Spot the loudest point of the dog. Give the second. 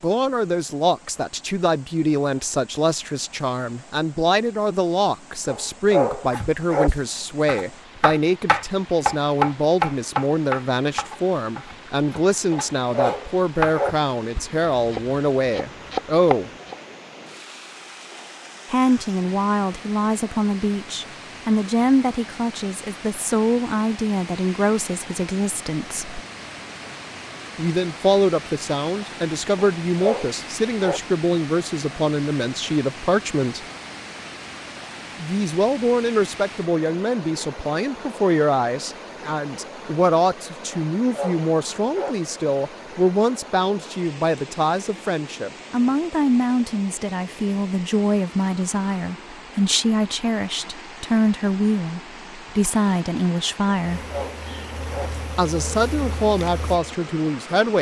6 s.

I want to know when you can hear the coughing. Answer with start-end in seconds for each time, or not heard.
not heard.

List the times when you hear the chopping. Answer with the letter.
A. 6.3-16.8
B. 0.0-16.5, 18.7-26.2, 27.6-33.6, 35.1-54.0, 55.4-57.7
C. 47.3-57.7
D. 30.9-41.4
A.